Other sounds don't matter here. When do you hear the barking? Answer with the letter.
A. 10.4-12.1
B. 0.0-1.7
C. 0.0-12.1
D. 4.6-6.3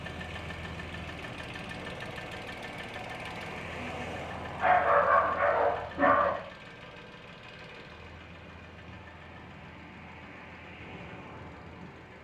D.